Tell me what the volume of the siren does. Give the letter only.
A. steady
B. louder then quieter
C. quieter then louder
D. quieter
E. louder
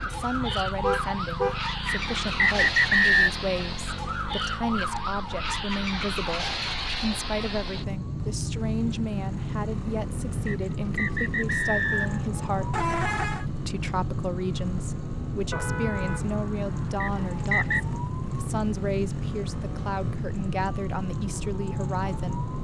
A.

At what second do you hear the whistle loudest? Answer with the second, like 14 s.
3 s.